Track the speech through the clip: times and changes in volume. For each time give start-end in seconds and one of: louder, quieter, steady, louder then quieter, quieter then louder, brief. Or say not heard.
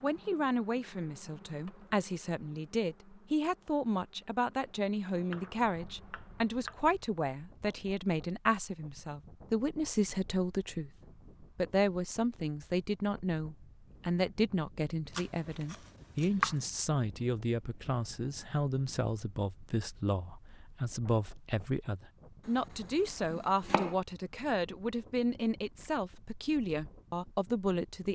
0.0-28.1 steady.